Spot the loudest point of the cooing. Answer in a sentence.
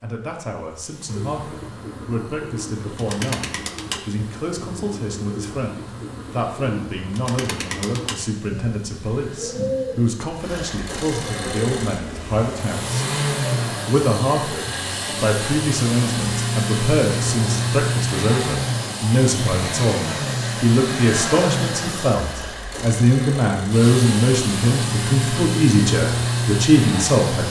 The volume of the cooing peaks at 10 seconds.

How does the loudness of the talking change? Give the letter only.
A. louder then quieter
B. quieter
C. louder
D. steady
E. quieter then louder
C.